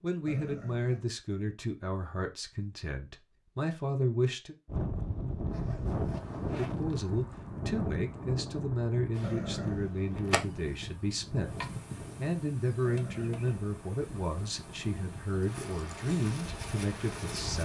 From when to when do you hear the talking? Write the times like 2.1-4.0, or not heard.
0.0-4.5, 6.5-17.5.